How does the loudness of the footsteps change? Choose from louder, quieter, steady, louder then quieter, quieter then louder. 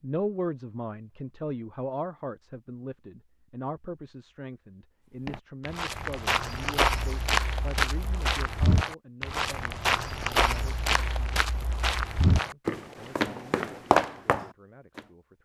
steady.